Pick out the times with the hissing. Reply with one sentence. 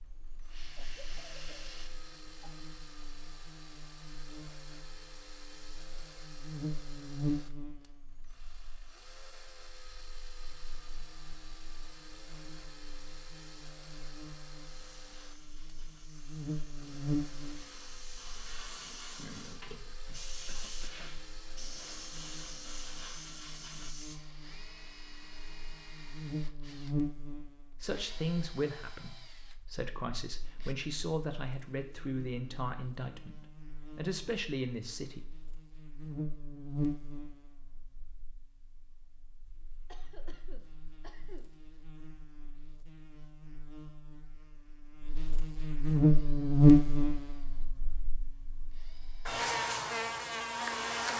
The hissing can be heard from 0.0 to 1.9 s and from 14.7 to 24.2 s.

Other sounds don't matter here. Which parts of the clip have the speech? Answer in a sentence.
You can hear the speech from 27.8 to 35.2 s.